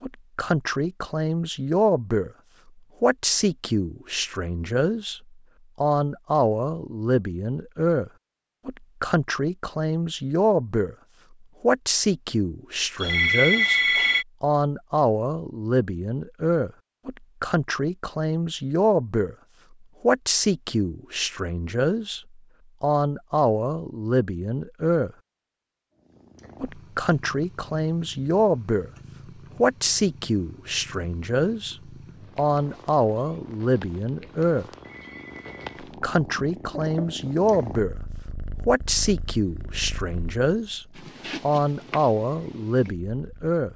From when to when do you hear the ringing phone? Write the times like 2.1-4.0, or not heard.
13.0-14.2, 34.8-35.6.